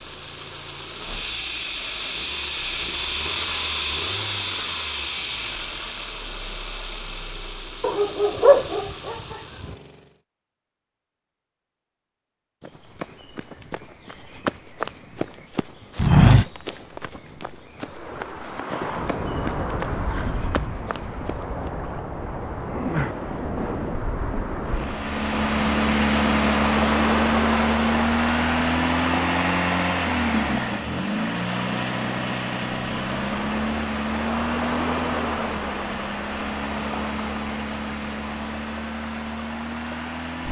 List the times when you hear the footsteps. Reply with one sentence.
You can hear the footsteps from 12.6 to 21.7 s.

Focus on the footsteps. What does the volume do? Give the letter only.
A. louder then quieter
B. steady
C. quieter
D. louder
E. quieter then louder
A.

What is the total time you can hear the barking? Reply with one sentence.
You can hear the barking for 2 seconds altogether.